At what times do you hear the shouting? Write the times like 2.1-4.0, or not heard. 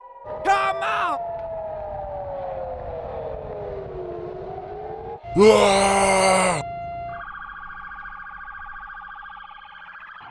0.5-1.2, 5.3-6.7.